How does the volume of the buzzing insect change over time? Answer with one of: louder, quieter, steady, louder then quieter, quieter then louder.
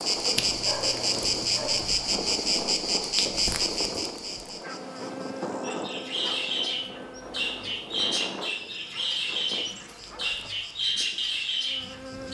quieter.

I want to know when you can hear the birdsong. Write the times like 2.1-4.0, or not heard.
5.6-12.2.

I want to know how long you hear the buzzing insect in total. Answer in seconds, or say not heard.
12 s.